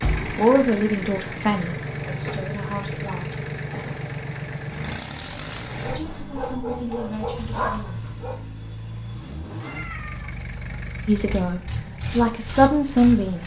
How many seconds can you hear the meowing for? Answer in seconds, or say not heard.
2 s.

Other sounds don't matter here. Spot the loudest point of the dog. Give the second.
8 s.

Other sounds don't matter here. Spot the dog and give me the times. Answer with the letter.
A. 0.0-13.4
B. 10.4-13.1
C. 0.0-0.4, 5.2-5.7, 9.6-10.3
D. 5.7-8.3
D.